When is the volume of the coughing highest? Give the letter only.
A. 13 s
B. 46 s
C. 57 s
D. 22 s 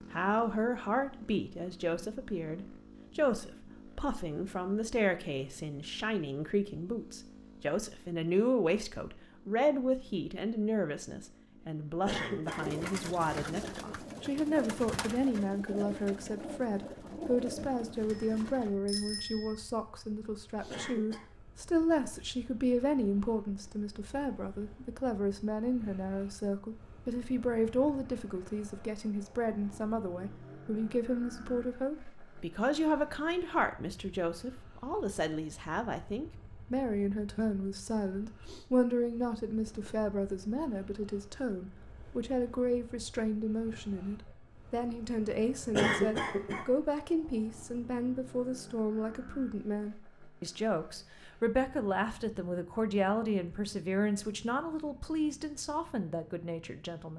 B.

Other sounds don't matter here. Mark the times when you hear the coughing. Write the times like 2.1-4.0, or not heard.
12.1-13.0, 20.7-21.2, 45.8-46.7.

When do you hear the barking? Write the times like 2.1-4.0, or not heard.
not heard.